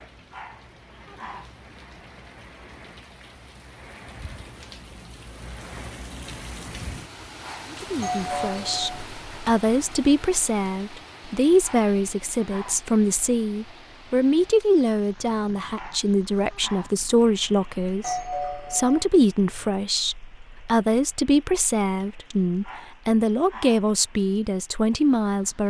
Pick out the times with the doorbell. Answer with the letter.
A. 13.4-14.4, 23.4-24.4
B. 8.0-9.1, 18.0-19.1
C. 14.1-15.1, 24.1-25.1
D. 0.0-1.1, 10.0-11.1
B.